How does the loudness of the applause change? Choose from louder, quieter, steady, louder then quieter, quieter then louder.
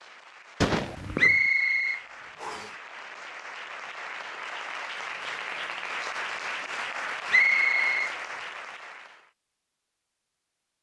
louder.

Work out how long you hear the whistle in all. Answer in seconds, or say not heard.
2 s.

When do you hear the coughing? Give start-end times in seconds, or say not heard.
0.6-1.4.